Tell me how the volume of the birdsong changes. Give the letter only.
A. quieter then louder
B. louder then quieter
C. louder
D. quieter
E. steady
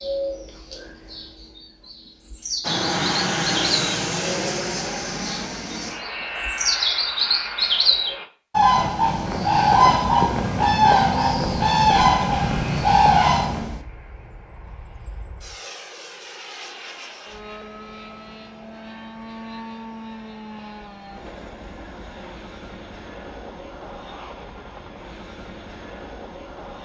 C.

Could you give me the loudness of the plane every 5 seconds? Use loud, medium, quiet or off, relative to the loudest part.
loud, medium, quiet, quiet, quiet, quiet.